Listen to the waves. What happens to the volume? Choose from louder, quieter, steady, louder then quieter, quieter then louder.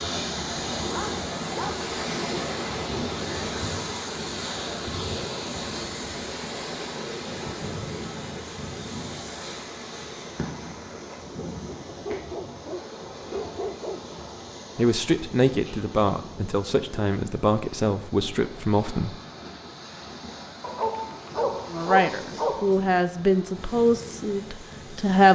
quieter.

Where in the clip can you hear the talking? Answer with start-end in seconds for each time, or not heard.
14.8-19.1, 21.7-25.2.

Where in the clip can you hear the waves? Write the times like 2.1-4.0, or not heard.
0.0-25.2.